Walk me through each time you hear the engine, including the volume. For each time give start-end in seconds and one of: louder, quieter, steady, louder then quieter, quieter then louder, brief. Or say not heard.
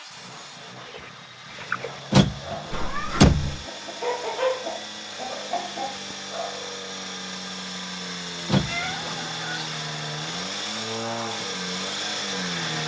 0.0-12.8 louder.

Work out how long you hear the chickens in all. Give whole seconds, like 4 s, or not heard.
6 s.